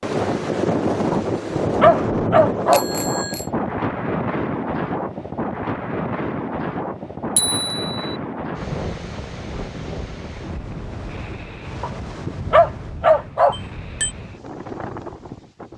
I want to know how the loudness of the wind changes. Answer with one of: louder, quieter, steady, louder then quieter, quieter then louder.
quieter.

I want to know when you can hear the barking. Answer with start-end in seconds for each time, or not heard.
1.1-2.9, 11.8-13.7.